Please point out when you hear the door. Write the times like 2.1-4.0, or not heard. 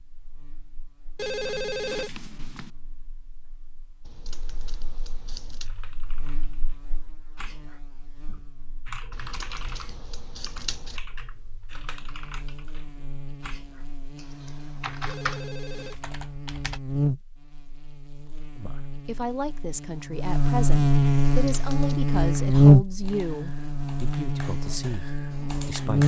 not heard.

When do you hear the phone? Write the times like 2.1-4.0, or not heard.
1.1-2.7, 15.1-16.1.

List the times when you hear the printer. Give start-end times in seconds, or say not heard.
not heard.